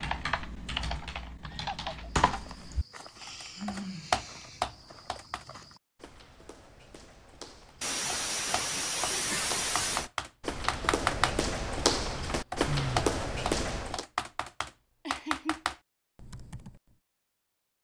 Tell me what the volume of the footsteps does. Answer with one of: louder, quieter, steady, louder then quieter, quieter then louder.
louder.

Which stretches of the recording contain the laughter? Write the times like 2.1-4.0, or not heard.
1.4-2.1, 7.8-10.1, 15.1-15.7.